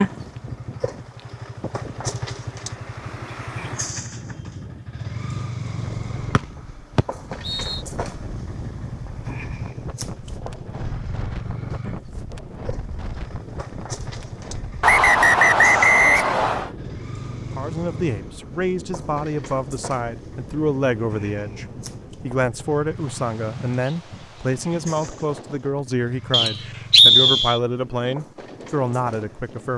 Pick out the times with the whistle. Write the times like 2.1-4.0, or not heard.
6.3-7.8, 14.8-16.7, 26.3-27.6.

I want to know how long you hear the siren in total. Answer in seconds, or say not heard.
not heard.